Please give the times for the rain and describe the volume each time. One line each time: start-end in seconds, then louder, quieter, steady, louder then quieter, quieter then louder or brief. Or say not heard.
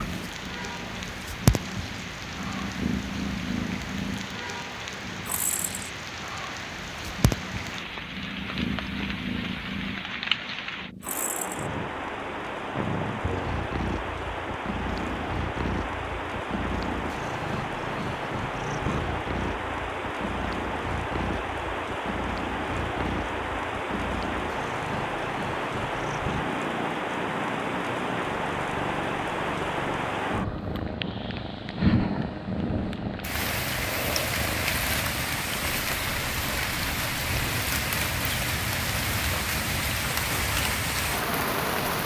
0.0-42.0 louder.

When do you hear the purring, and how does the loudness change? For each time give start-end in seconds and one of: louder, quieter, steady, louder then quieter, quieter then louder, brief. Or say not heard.
0.0-41.8 quieter.